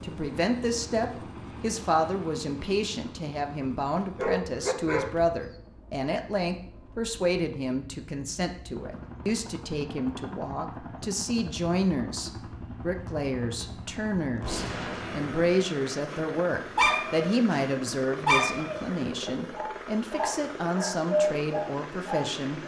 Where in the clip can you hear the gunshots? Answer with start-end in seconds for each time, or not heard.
14.4-15.7.